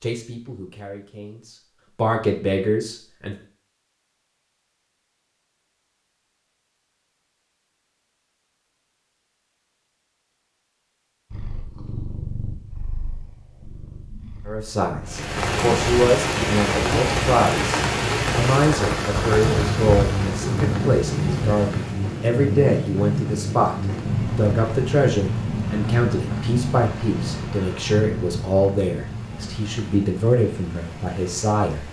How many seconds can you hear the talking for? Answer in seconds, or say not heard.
21 s.